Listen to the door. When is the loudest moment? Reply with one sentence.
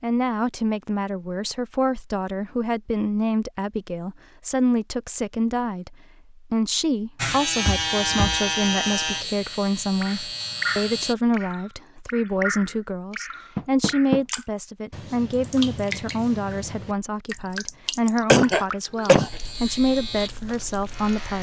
The volume of the door peaks at 14 seconds.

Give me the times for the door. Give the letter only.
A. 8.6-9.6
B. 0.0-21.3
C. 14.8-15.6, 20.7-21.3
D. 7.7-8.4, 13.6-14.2
D.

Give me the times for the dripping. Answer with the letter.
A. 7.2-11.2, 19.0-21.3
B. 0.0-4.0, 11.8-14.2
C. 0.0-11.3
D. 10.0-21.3
D.